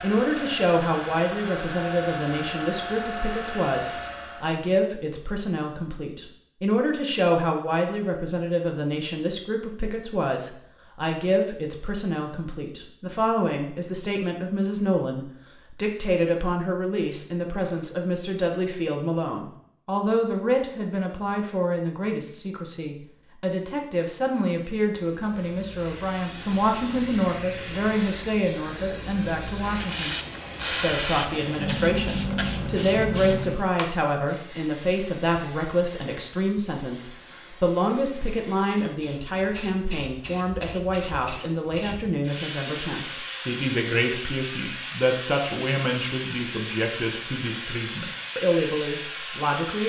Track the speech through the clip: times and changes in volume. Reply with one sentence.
You can hear the speech from 0.0 to 49.8 s, at a steady volume.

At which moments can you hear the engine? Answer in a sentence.
The engine can be heard from 0.0 to 4.5 s.